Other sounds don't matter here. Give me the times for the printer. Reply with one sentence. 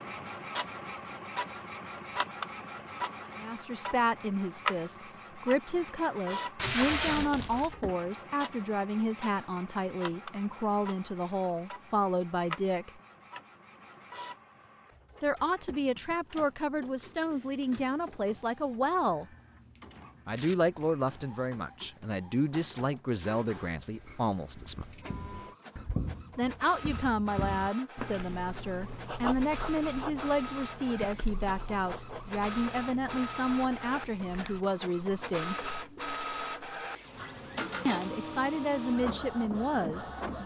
The printer can be heard from 0.0 to 40.4 s.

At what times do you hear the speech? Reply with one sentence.
The speech can be heard from 3.4 to 13.0 s, from 15.2 to 19.2 s, from 20.2 to 24.9 s, from 26.4 to 35.5 s and from 37.9 to 40.4 s.